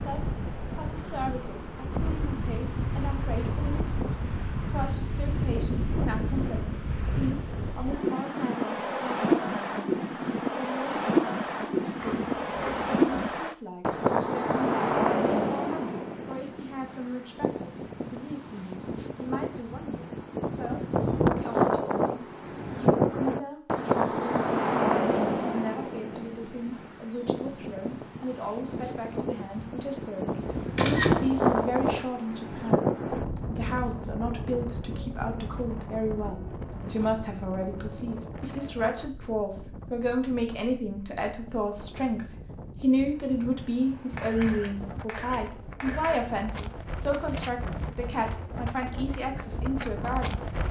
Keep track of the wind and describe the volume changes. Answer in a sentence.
The loudness of the wind goes down.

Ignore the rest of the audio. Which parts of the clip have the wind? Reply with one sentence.
The wind can be heard from 0.0 to 50.6 s.